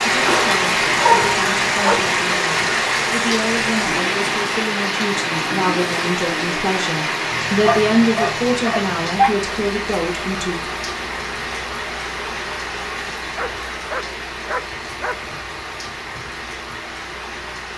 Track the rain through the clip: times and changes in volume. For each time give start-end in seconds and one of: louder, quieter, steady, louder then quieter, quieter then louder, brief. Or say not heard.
0.0-17.7 quieter.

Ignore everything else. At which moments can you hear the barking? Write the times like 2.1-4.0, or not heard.
0.2-2.0, 7.6-9.3, 13.3-15.3.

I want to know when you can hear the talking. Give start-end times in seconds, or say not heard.
0.0-10.7.